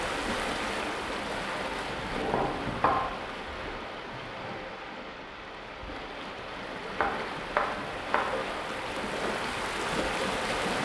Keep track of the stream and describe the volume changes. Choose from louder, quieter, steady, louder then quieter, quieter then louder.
quieter then louder.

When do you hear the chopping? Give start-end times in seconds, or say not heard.
1.9-3.8, 7.0-8.6.